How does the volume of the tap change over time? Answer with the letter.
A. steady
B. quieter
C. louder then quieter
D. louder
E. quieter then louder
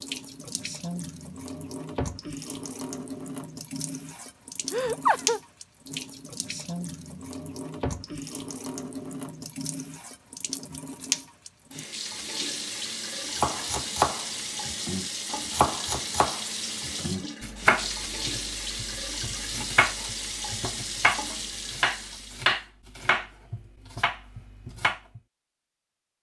A.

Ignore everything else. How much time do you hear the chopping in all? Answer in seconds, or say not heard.
12 s.